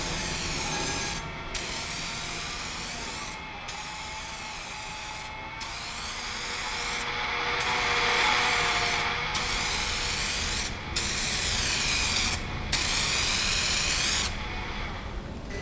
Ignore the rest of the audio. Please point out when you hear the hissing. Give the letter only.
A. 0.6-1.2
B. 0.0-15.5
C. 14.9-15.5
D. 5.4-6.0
B.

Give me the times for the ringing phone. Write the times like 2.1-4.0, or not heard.
0.6-1.2.